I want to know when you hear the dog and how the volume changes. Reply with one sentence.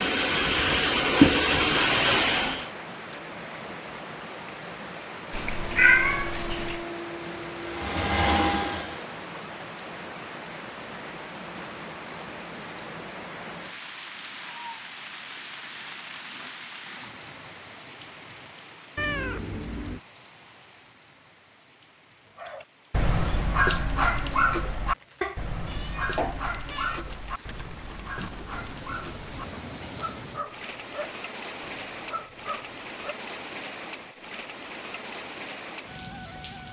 The dog can be heard from 22.4 to 33.1 s, getting quieter.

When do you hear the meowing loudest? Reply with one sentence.
The loudest moment of the meowing is at 6 seconds.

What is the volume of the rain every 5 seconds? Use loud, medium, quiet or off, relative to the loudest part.
loud, loud, loud, loud, quiet, loud, loud, loud.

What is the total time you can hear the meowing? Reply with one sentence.
The meowing can be heard for 4 seconds in total.